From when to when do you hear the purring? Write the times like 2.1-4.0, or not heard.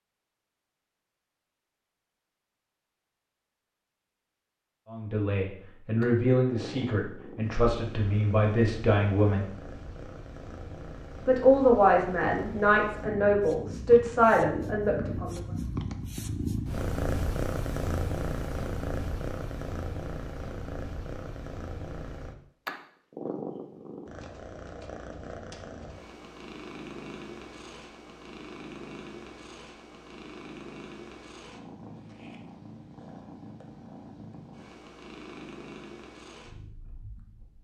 6.0-37.5.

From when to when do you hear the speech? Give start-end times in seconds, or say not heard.
4.9-9.4, 11.2-15.4.